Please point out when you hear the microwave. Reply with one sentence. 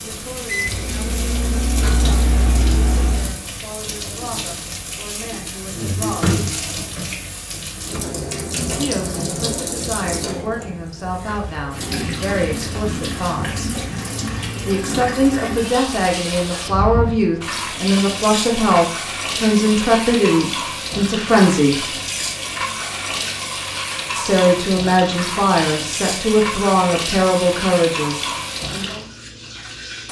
You can hear the microwave from 0.0 to 3.4 s.